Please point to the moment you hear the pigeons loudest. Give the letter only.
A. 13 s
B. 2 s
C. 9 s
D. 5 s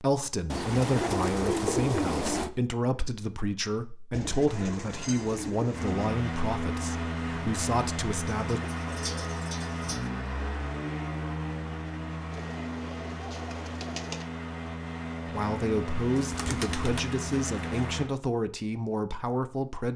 B.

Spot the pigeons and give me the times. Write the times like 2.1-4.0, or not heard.
0.5-2.5, 4.1-6.2, 8.3-10.1, 12.3-14.2, 16.1-17.8.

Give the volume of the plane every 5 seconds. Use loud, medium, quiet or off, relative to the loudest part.
off, loud, loud, loud.